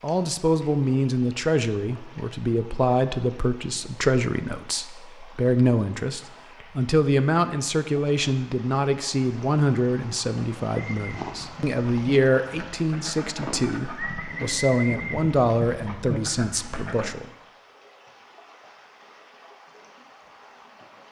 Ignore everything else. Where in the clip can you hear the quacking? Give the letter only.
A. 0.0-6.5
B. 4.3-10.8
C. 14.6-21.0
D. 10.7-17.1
D.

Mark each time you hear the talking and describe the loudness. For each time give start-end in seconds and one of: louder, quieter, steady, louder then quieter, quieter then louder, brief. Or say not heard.
0.0-17.2 steady.